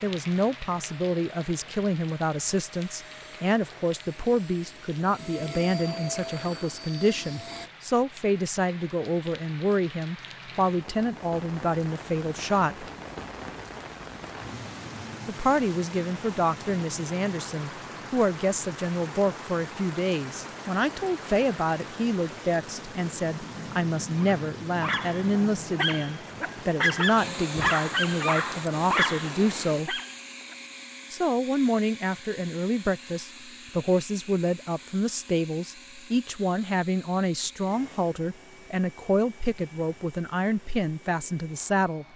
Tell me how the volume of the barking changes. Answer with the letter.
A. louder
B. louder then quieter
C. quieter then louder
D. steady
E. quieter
B.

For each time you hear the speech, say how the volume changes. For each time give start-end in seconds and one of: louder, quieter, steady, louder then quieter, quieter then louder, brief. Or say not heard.
0.0-12.8 steady
15.2-30.0 steady
31.1-42.0 steady.